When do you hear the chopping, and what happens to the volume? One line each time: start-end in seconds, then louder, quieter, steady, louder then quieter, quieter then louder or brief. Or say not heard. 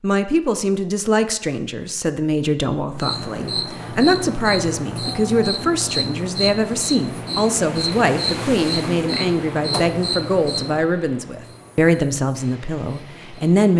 not heard.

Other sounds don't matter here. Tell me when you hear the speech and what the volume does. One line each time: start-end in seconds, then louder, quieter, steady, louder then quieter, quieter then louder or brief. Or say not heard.
0.0-13.7 steady.